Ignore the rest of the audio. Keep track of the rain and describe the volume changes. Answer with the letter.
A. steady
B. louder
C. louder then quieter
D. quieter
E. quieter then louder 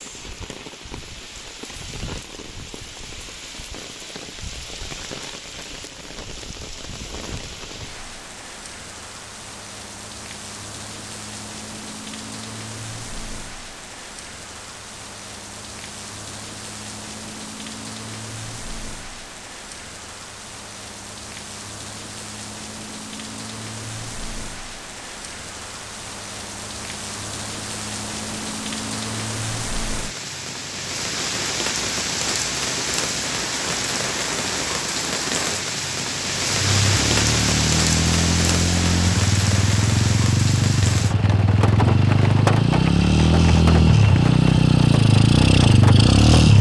B.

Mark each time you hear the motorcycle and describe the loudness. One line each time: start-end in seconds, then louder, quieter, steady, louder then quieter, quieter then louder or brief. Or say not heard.
36.5-46.5 louder.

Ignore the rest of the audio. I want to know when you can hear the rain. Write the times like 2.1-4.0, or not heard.
0.0-46.5.